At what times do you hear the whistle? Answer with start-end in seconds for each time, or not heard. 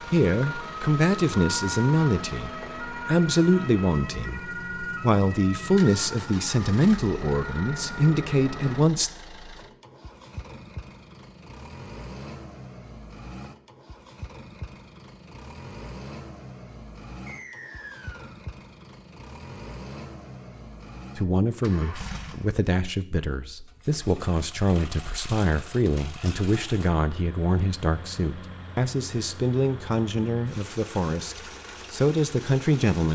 17.2-18.4.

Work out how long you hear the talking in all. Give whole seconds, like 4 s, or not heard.
21 s.